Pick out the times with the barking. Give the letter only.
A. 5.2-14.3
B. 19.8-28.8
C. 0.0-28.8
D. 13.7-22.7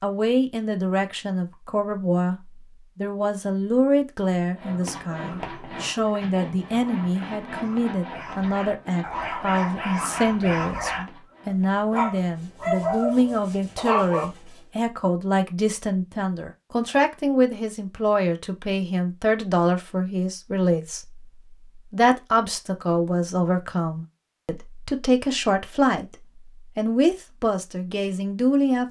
A.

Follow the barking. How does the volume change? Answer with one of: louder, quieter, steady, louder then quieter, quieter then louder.
louder.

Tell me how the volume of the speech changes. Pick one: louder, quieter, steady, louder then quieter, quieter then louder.
steady.